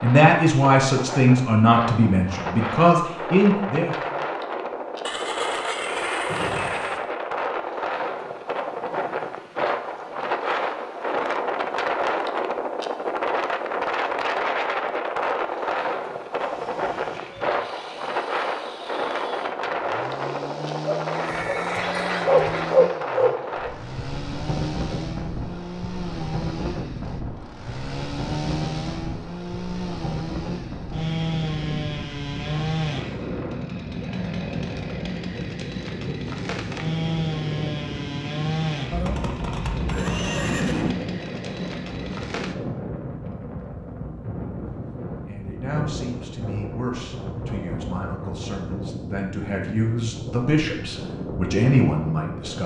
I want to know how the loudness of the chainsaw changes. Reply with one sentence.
The loudness of the chainsaw goes up.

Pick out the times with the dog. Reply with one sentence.
The dog can be heard from 20.9 to 23.7 s.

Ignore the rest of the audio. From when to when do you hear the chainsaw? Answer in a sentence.
The chainsaw can be heard from 16.4 to 42.5 s.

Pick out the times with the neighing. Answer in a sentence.
You can hear the neighing from 5.0 to 7.0 s, from 21.1 to 22.8 s and from 38.9 to 41.0 s.